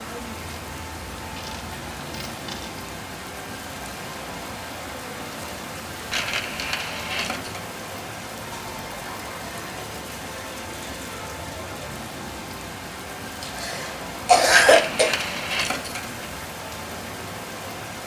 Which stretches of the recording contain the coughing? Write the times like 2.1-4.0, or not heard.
13.4-15.2.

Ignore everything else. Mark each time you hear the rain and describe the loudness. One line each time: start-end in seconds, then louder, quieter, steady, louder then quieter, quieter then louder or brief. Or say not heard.
0.0-18.0 steady.